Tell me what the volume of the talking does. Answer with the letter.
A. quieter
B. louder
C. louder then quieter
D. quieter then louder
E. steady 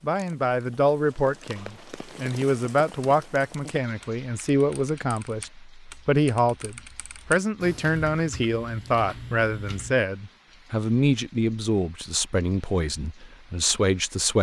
E.